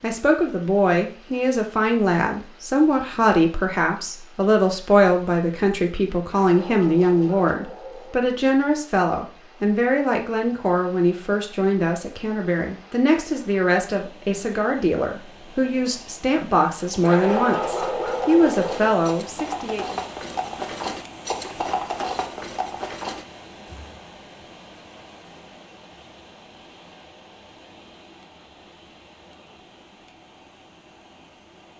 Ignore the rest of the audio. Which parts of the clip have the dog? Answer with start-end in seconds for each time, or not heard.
6.2-8.2, 17.0-18.9.